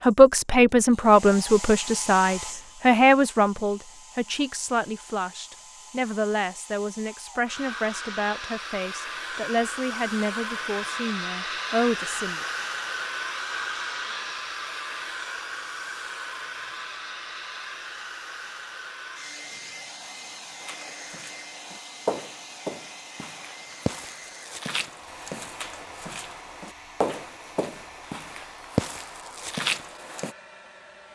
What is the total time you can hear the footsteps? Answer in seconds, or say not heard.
10 s.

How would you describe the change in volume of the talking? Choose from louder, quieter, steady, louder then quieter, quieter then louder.
quieter.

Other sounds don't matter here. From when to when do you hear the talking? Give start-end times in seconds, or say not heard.
0.0-12.4.